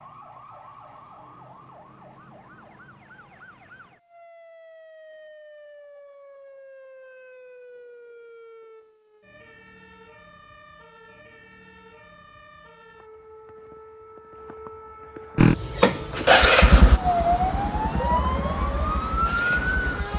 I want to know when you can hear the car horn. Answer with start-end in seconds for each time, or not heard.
not heard.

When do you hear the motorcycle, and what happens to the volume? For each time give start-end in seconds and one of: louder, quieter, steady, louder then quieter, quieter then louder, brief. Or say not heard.
15.3-20.1 quieter.